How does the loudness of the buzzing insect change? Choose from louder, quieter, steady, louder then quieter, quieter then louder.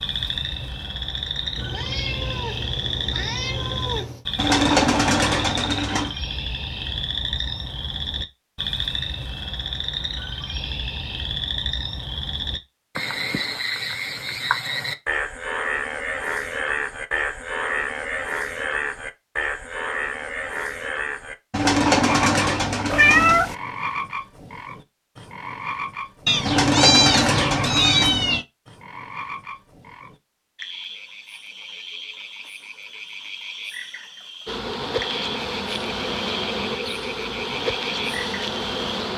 steady.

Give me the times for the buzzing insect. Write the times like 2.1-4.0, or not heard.
34.5-39.1.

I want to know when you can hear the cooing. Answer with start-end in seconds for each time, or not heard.
4.3-6.1, 21.5-23.4, 26.4-28.2.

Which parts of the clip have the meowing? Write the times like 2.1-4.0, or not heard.
1.6-4.2, 22.9-23.6, 26.2-28.4.